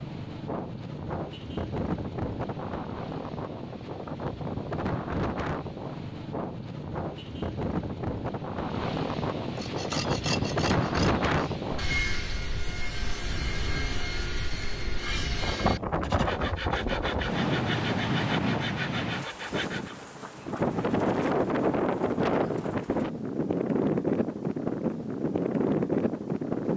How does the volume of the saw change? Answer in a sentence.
The loudness of the saw stays about the same.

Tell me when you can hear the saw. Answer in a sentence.
The saw can be heard from 9.6 to 19.9 s.